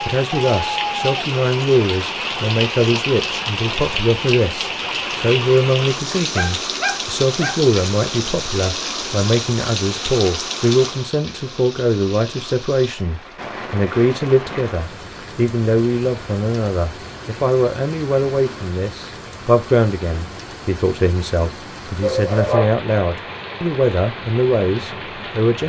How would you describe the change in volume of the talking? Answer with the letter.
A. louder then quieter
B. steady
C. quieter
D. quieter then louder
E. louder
B.